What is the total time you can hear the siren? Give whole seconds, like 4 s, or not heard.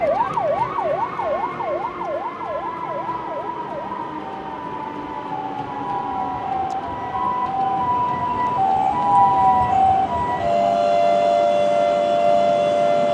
13 s.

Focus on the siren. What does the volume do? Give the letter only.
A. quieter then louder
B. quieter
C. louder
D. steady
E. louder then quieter
A.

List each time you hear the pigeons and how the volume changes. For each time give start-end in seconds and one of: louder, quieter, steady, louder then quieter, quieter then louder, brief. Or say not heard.
not heard.